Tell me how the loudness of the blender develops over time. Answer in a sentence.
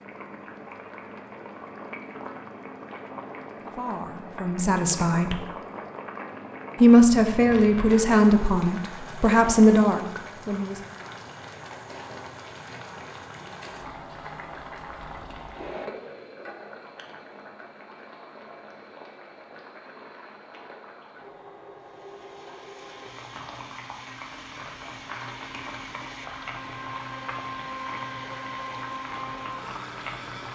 The loudness of the blender goes up.